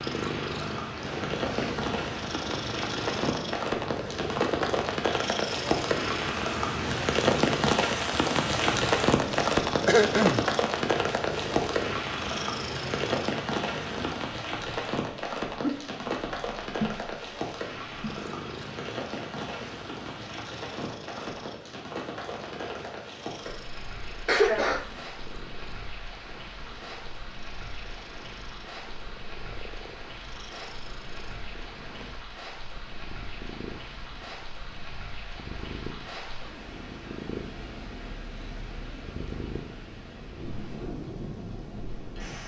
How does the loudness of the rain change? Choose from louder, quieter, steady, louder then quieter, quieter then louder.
quieter.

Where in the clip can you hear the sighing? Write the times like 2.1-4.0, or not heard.
not heard.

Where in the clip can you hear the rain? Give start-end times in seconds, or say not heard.
0.0-42.4.